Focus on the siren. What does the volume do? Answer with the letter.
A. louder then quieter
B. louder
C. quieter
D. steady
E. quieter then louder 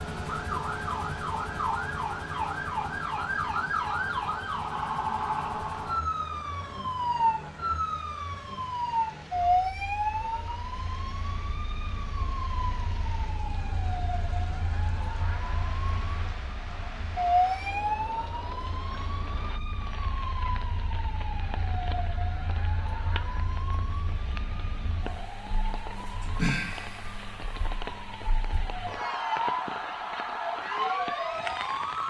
E.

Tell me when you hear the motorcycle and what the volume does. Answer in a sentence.
You can't hear the motorcycle here.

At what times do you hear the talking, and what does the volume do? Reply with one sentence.
You can't hear the talking here.